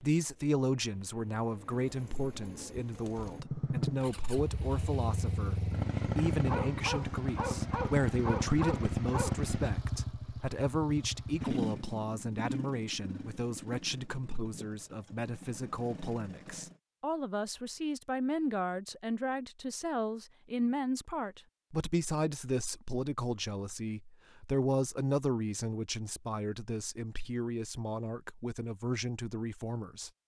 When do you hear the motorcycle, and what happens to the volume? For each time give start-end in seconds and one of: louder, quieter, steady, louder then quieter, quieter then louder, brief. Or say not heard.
3.3-16.8 quieter.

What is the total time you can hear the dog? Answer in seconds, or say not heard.
3 s.